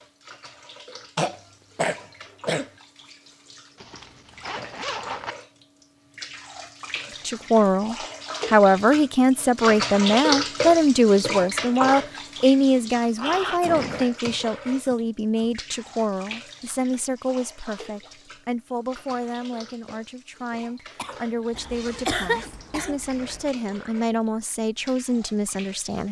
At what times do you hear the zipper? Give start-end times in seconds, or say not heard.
3.8-5.3, 13.2-13.8, 21.5-23.6.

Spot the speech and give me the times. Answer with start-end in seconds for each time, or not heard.
7.2-26.0.